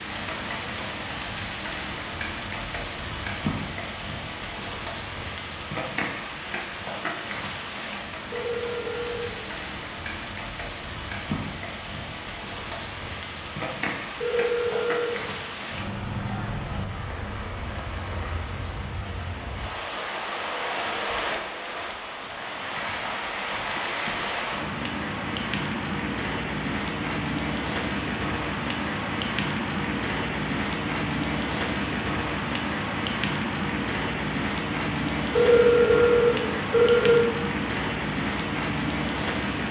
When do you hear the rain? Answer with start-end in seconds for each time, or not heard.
0.0-39.6.